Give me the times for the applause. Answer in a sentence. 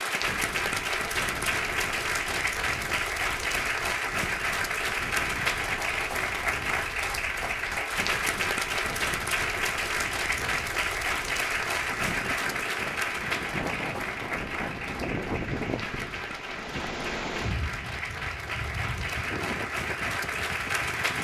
The applause can be heard from 0.0 to 21.1 s.